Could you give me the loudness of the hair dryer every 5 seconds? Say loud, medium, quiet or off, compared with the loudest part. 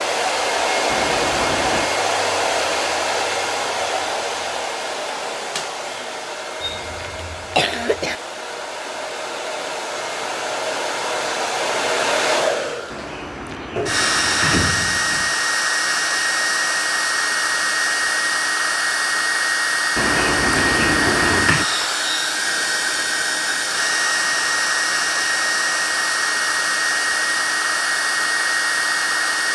loud, medium, loud, loud, loud, loud.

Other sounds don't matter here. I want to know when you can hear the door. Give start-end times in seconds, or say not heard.
0.8-1.9, 12.9-15.3, 19.9-21.6.